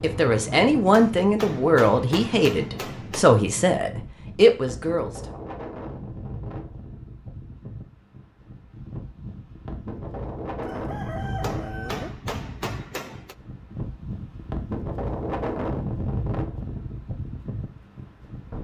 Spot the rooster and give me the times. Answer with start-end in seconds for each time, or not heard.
10.6-12.2.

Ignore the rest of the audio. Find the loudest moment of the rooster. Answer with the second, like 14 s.
12 s.